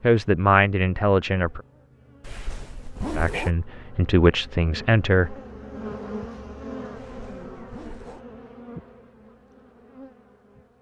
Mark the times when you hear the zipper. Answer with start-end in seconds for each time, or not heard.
2.2-3.5, 7.0-8.2.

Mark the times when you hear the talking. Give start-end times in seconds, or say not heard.
0.0-1.6, 3.1-5.3.